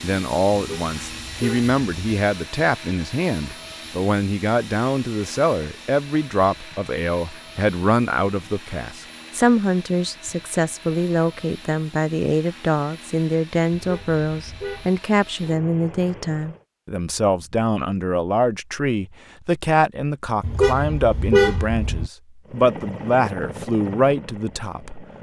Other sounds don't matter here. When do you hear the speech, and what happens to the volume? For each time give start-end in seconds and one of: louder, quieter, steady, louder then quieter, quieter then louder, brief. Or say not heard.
0.0-25.1 steady.